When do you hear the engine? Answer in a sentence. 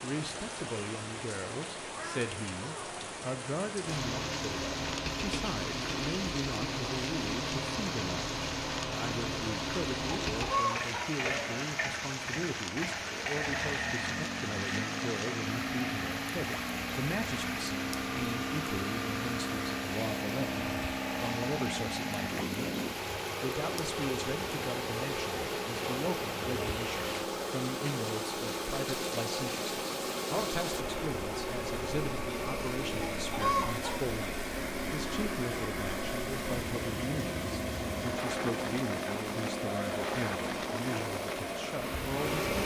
The engine can be heard from 3.8 to 42.6 s.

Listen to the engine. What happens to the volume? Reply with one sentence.
The volume of the engine stays about the same.